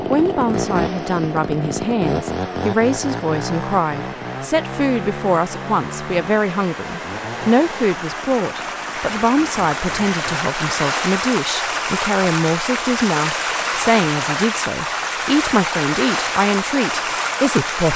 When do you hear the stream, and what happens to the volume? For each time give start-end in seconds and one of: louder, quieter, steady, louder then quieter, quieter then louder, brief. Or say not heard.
0.0-17.9 louder.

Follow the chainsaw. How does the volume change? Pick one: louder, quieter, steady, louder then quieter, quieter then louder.
quieter.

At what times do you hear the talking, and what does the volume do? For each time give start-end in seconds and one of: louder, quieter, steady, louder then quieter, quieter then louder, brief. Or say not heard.
0.1-17.9 steady.